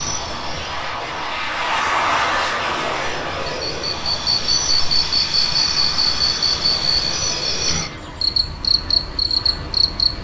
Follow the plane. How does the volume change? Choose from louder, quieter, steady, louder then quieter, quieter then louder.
quieter.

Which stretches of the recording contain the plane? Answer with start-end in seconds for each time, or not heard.
0.0-10.1.